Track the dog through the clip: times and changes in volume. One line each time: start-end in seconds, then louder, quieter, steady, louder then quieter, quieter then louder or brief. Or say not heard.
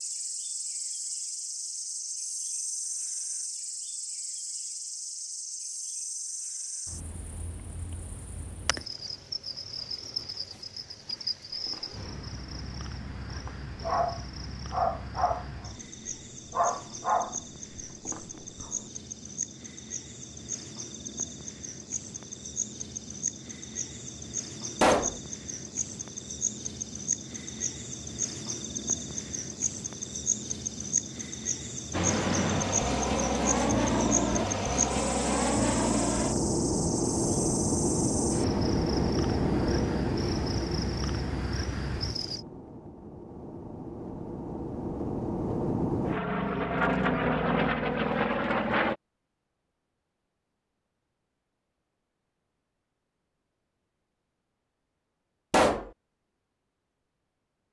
11.7-15.7 louder
16.5-18.7 brief.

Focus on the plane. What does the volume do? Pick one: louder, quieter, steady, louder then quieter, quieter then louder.
quieter then louder.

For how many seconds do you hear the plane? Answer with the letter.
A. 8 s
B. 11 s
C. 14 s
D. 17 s
D.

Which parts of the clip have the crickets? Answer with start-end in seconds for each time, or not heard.
0.0-42.4.